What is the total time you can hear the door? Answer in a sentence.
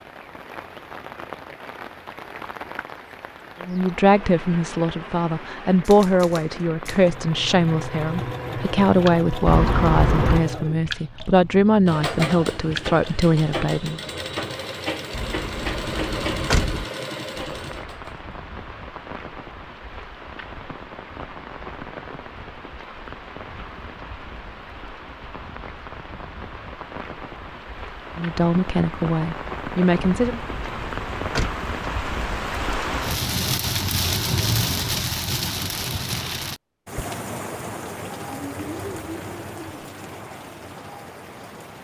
The door can be heard for 4 seconds in total.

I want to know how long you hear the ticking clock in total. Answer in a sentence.
The ticking clock can't be heard in this clip.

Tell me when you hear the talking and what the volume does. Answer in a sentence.
You can hear the talking from 3.6 to 14.0 s, at a steady volume; and briefly from 28.1 to 30.4 s.